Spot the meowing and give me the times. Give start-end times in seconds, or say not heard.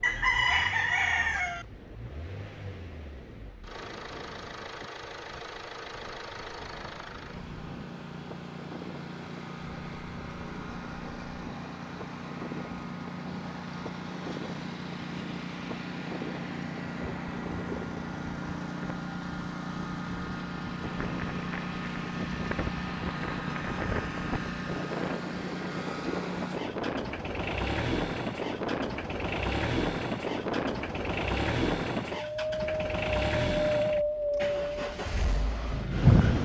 not heard.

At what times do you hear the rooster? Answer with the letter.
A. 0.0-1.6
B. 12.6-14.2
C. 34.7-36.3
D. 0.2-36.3
A.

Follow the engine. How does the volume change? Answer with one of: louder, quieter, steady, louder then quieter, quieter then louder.
louder.